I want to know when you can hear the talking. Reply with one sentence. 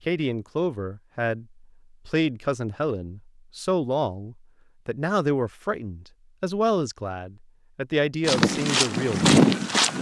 The talking can be heard from 0.1 to 9.3 s.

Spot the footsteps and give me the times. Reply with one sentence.
The footsteps can be heard from 8.2 to 9.9 s.